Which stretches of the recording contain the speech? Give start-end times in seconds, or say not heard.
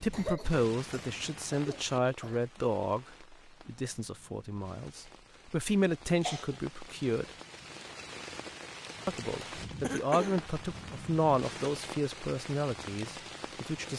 0.0-7.3, 9.1-13.9.